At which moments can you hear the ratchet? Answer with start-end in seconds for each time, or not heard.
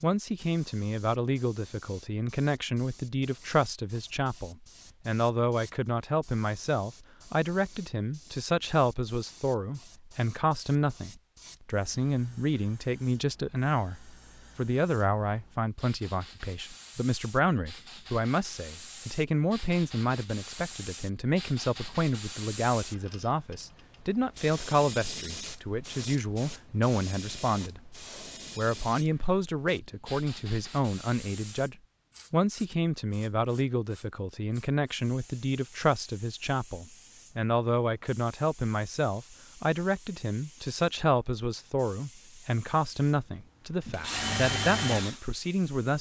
not heard.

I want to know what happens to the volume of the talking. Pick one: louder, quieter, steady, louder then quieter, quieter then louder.
steady.